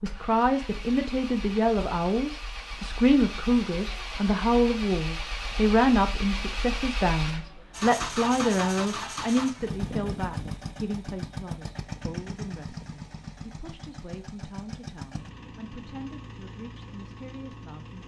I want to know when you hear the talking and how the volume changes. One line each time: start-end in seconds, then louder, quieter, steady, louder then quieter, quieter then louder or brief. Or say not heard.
0.0-18.0 quieter.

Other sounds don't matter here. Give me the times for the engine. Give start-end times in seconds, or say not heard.
0.0-18.0.